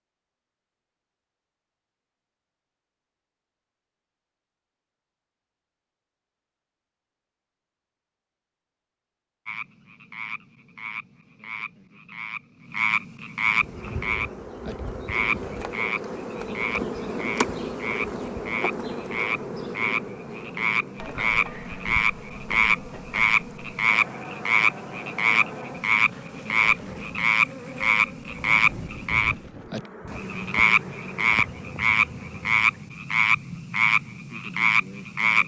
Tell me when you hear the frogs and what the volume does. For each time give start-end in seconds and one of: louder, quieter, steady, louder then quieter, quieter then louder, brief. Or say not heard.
9.4-35.4 louder.